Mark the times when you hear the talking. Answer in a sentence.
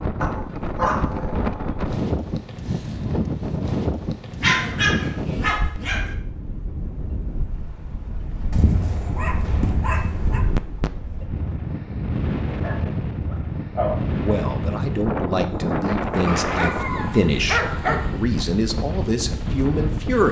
The talking can be heard from 14.2 to 20.2 s.